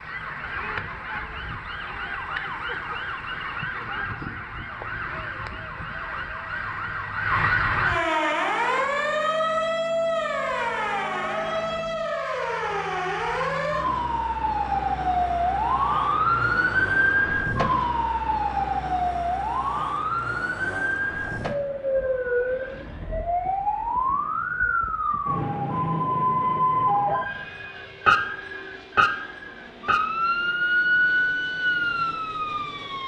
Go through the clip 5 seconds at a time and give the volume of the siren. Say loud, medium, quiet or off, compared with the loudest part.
medium, loud, loud, loud, loud, loud, loud.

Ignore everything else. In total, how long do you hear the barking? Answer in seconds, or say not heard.
not heard.